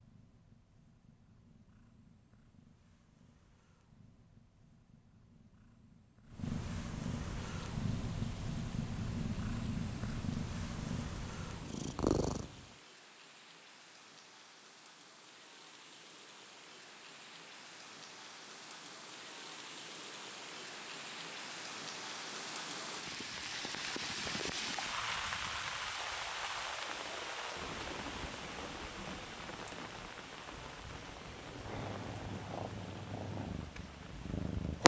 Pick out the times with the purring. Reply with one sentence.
You can hear the purring from 0.0 to 12.8 s and from 31.1 to 34.8 s.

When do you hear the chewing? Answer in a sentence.
You can't hear the chewing here.